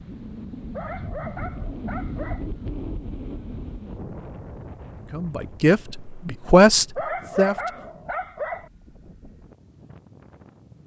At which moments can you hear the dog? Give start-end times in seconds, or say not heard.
0.7-2.5, 7.0-8.7.